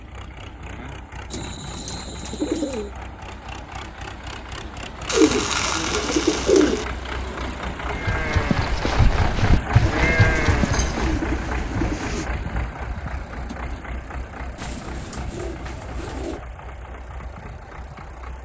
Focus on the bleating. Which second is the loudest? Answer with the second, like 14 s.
10 s.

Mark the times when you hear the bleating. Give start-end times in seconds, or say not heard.
8.0-11.2.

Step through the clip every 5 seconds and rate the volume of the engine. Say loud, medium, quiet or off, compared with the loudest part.
medium, loud, loud, medium.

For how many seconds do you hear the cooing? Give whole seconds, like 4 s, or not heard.
8 s.